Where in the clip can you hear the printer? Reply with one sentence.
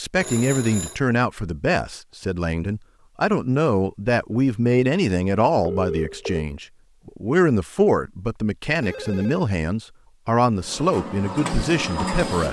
The printer can be heard from 10.6 to 12.4 s.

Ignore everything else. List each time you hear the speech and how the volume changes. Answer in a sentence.
You can hear the speech from 0.0 to 12.4 s, at a steady volume.